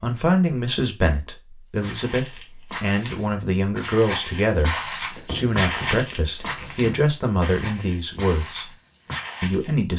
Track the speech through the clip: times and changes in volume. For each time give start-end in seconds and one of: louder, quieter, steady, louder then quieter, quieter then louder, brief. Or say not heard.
0.0-8.7 steady
9.4-9.9 brief.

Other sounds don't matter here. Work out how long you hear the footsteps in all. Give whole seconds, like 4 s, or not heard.
8 s.